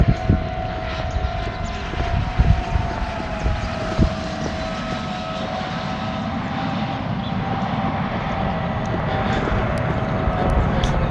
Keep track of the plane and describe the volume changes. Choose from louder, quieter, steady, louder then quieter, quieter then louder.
louder.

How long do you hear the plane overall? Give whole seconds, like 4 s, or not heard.
11 s.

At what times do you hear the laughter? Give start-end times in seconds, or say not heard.
not heard.